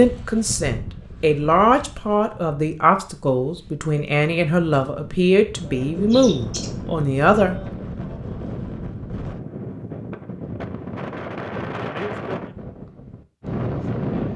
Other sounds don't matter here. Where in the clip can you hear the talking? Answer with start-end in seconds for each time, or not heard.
0.0-7.5.